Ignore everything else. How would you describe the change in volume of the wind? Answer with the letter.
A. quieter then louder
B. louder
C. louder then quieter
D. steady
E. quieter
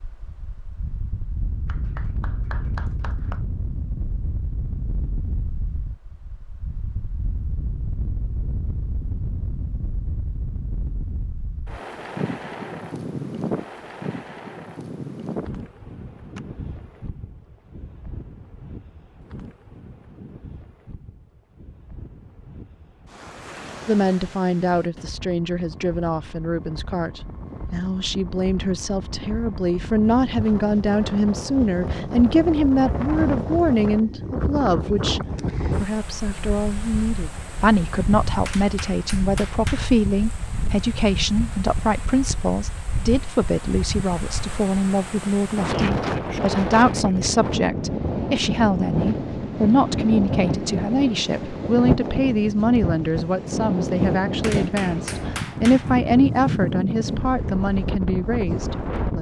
B.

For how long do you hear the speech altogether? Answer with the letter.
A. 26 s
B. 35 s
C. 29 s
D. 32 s
B.